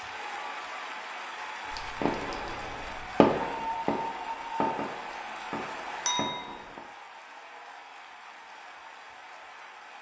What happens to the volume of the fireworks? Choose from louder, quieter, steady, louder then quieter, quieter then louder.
louder then quieter.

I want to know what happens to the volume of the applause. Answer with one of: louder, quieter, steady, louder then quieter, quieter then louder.
quieter.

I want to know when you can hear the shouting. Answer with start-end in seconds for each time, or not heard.
not heard.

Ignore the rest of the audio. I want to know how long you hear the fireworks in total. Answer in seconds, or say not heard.
5 s.